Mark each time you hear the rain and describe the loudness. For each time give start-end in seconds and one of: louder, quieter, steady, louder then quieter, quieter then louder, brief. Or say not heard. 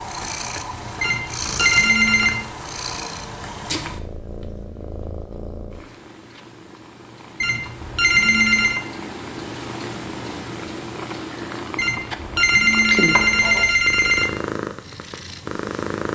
not heard.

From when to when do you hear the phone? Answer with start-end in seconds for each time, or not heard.
1.0-2.4, 7.4-8.8, 11.8-14.3.